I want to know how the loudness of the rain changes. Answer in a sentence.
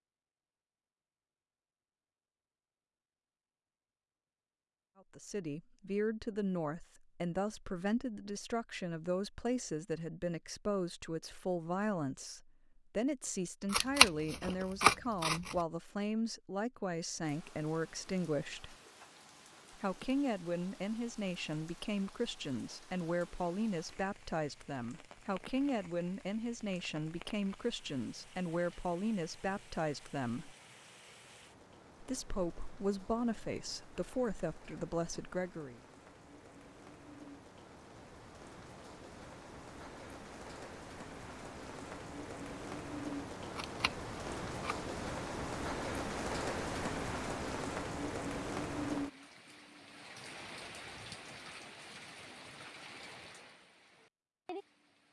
The loudness of the rain goes up.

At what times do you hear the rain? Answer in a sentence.
The rain can be heard from 17.2 to 55.0 s.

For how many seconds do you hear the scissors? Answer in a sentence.
The scissors can be heard for 3 seconds in total.